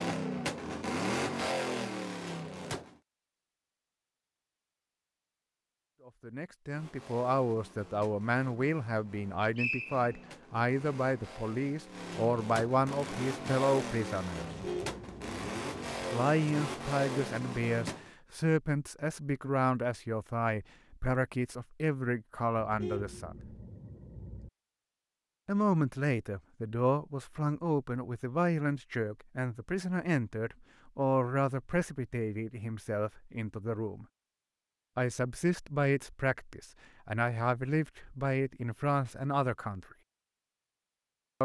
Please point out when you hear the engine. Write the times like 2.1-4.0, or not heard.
0.0-3.0, 6.7-18.1.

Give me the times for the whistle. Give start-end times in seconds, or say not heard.
9.2-10.3.